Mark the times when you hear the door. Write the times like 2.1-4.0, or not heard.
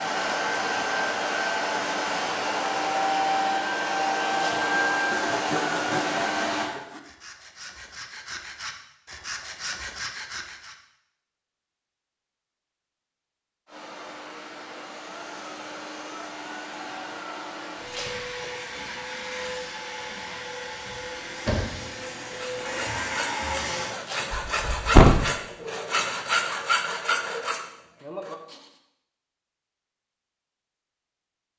24.3-25.2.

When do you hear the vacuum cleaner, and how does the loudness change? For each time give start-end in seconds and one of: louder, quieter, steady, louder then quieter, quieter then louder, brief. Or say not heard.
0.0-6.7 steady
13.7-23.9 louder.